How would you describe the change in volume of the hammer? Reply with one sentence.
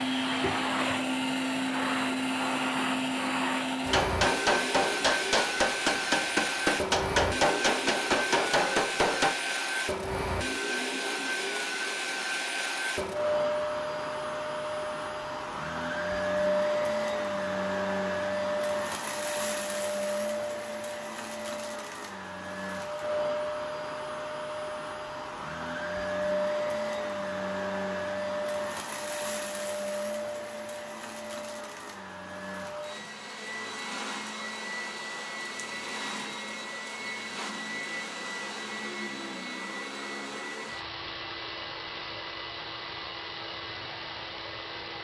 The loudness of the hammer stays about the same.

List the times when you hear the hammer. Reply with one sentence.
The hammer can be heard from 3.9 to 9.3 s.